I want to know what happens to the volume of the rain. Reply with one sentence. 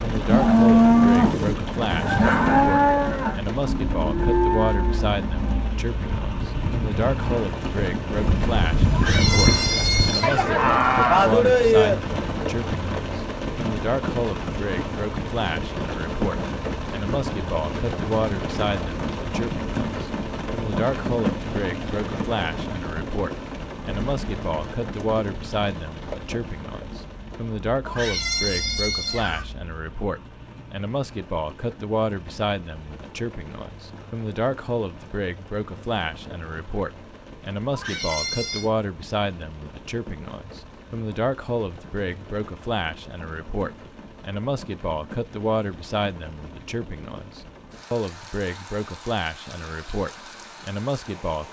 The loudness of the rain goes down.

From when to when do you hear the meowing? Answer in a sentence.
You can hear the meowing from 8.9 to 10.5 s, from 27.9 to 29.4 s and from 37.7 to 38.7 s.